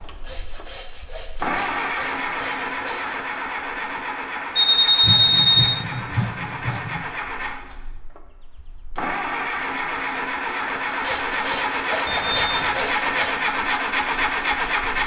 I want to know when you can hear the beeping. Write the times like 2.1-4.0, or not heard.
4.5-5.8, 12.1-12.8.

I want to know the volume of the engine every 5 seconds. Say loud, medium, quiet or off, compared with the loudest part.
medium, medium, loud.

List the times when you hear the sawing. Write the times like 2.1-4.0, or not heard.
0.2-3.2, 5.0-7.1, 11.0-13.4.